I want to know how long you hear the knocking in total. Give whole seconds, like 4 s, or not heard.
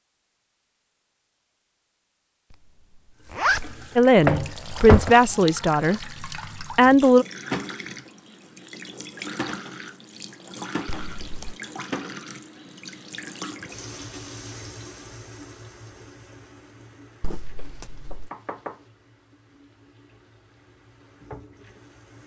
2 s.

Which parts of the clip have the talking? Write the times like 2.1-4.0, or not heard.
4.0-7.2.